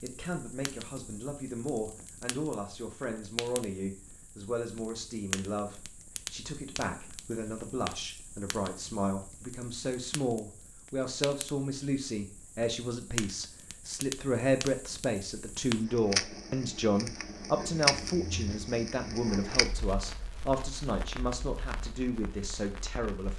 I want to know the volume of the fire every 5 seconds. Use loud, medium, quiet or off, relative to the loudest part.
quiet, medium, medium, loud, quiet.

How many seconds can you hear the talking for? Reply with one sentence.
The talking can be heard for 23 seconds in total.